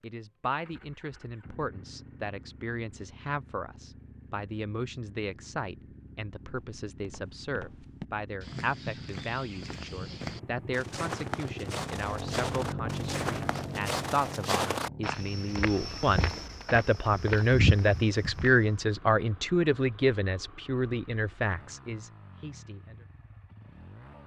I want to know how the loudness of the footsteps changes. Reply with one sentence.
The loudness of the footsteps goes up.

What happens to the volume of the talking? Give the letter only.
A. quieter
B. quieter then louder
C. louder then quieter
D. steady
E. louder
E.